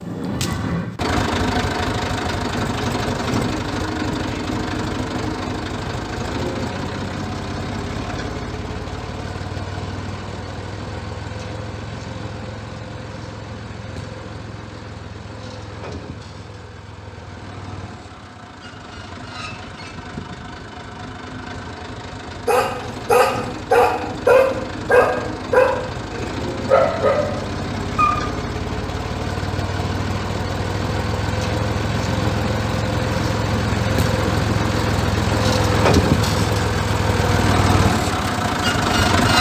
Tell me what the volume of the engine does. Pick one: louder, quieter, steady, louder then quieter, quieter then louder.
quieter then louder.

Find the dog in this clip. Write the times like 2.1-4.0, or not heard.
22.4-28.1.